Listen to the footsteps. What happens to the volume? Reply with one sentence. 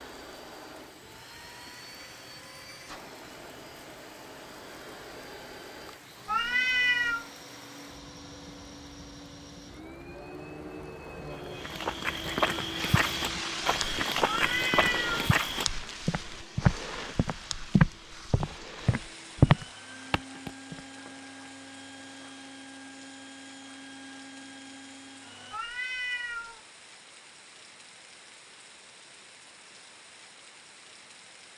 The volume of the footsteps goes up.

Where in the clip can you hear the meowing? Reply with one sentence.
You can hear the meowing from 6.2 to 7.2 s, from 14.2 to 15.2 s and from 25.5 to 26.6 s.